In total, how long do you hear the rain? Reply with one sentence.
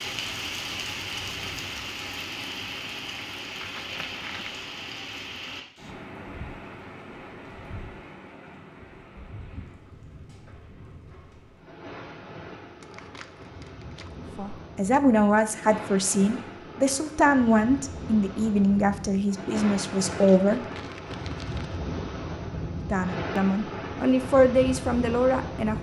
The rain can be heard for 26 seconds in total.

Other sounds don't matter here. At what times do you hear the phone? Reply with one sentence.
The phone can't be heard in this clip.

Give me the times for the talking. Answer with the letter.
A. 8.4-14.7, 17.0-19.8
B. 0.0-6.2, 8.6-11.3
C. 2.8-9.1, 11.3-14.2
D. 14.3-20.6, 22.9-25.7
D.